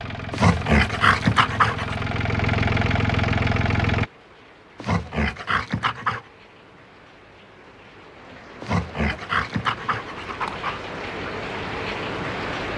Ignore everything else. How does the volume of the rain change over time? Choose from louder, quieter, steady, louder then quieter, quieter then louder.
louder.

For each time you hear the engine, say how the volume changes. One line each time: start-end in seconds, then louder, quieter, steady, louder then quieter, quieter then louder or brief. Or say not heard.
0.0-4.1 louder.